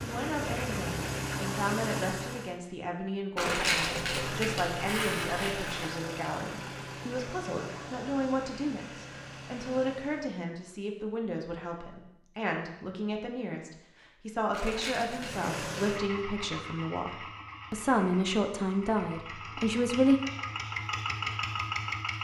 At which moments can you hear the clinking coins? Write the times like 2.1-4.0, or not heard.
3.4-5.9, 14.5-15.4.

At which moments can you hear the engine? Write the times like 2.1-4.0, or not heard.
0.0-2.5, 3.9-10.3, 15.1-22.1.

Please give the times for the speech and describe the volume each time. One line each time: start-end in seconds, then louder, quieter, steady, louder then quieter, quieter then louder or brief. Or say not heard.
0.0-20.2 louder.